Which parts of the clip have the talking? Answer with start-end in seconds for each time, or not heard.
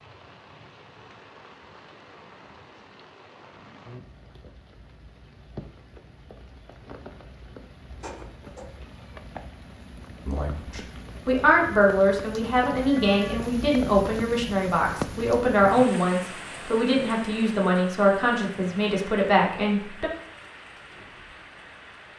10.2-20.1.